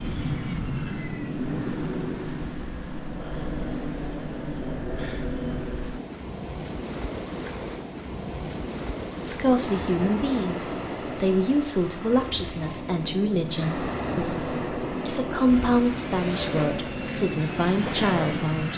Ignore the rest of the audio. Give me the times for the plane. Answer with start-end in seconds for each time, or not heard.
0.0-6.2, 12.6-18.7.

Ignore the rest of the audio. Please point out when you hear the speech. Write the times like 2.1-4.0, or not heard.
9.2-18.7.